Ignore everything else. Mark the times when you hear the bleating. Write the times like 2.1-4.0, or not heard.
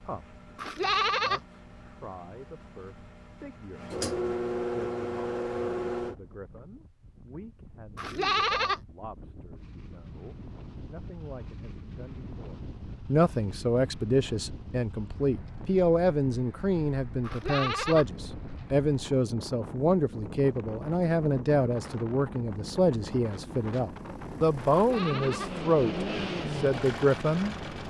0.6-1.4, 8.0-8.8, 17.2-18.1, 24.7-25.5.